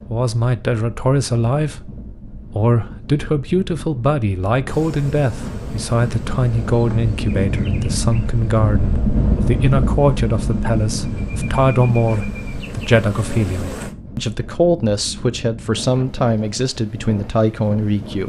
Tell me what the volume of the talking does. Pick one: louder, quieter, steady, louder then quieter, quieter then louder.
steady.